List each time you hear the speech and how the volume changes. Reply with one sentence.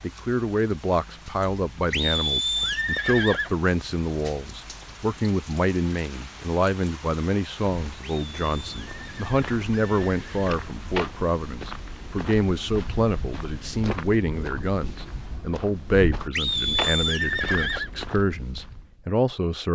You can hear the speech from 0.0 to 19.7 s, at a steady volume.